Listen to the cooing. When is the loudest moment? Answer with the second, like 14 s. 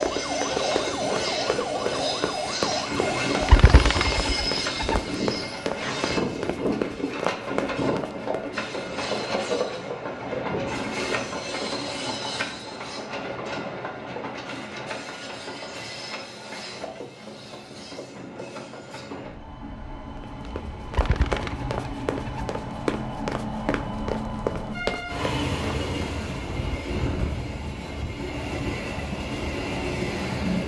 4 s.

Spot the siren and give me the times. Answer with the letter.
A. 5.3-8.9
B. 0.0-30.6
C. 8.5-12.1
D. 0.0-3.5
D.